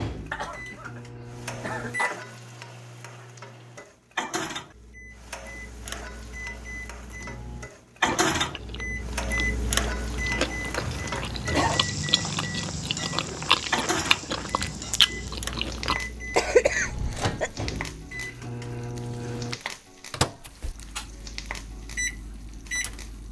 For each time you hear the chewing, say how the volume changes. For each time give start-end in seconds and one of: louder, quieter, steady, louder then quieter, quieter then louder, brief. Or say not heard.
8.0-15.9 louder.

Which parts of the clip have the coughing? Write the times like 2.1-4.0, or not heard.
0.3-1.0, 1.6-2.2, 10.4-11.8, 16.4-17.6.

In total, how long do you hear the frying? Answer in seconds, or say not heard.
23 s.